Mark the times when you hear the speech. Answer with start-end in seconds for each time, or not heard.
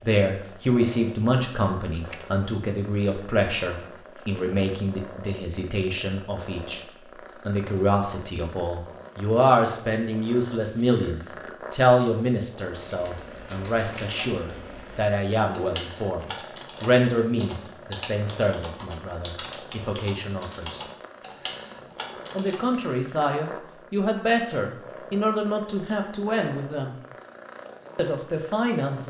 0.0-6.8, 7.5-20.8, 22.3-26.9, 27.9-29.0.